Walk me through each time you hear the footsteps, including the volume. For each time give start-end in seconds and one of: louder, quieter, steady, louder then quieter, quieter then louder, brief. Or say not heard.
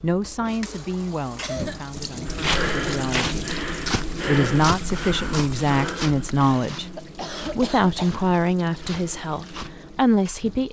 2.2-9.8 quieter.